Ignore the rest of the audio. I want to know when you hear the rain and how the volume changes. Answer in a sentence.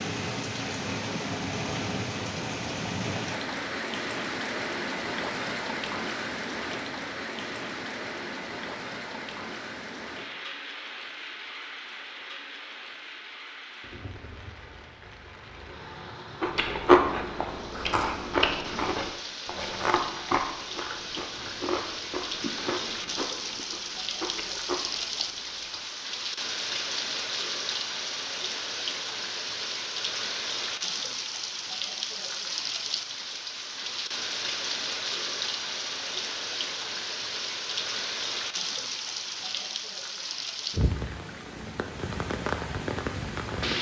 The rain can be heard from 0.0 to 43.7 s, getting quieter then louder.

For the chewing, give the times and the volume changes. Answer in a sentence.
The chewing can be heard from 16.4 to 25.9 s, getting quieter.